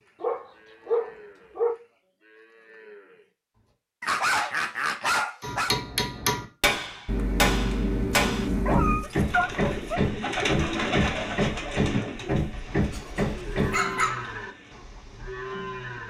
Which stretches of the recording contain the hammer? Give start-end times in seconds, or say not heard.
5.4-14.0.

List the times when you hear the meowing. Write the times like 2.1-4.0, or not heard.
7.0-9.1.